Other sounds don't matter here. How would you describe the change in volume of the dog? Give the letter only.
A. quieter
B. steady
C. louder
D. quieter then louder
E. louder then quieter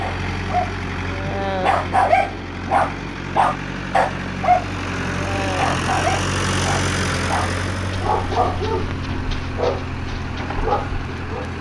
A.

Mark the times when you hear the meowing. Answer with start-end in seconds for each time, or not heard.
not heard.